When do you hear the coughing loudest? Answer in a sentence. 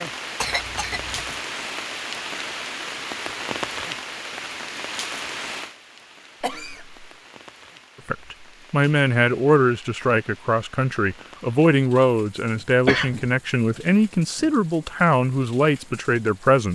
The volume of the coughing peaks at 13 seconds.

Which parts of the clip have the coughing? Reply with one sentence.
The coughing can be heard from 0.4 to 1.4 s, from 6.4 to 7.1 s and from 12.8 to 13.3 s.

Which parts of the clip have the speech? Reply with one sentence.
The speech can be heard from 8.1 to 16.6 s.